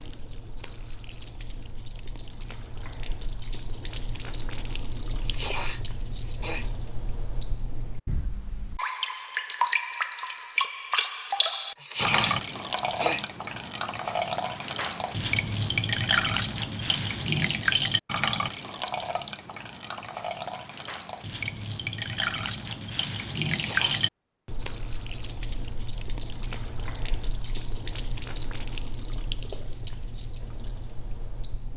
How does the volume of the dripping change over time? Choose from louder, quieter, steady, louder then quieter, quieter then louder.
louder then quieter.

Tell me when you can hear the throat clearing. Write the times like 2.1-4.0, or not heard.
5.2-6.8, 11.8-13.2, 23.4-24.1.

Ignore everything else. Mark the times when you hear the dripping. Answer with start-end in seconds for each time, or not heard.
0.0-31.7.